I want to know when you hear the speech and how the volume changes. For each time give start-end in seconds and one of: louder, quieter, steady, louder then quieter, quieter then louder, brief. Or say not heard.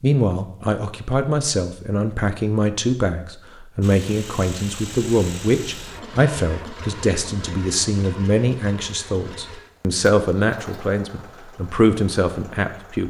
0.0-13.0 steady.